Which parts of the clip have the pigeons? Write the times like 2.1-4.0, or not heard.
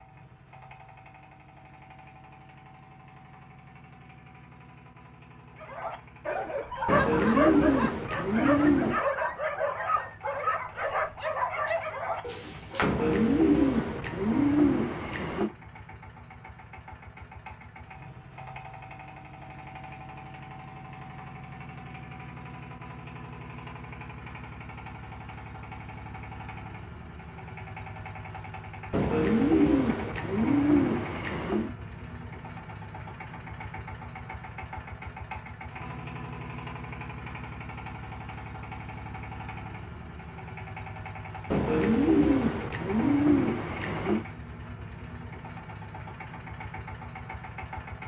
6.8-9.0, 12.8-15.5, 28.9-31.7, 41.5-44.2.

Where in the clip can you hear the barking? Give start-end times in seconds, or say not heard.
5.6-12.9.